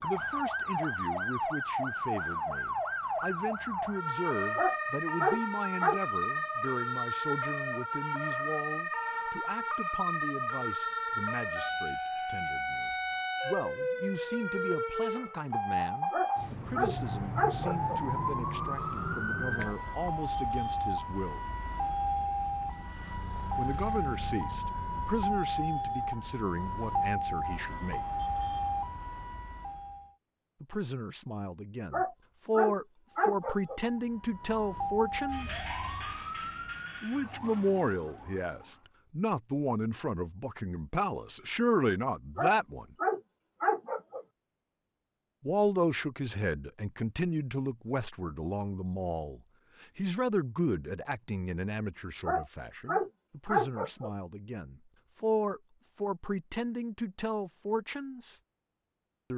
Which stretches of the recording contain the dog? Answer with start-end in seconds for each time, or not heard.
4.5-6.0, 16.1-18.0, 31.9-33.8, 42.4-44.2, 52.2-54.1.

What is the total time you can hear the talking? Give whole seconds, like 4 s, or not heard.
50 s.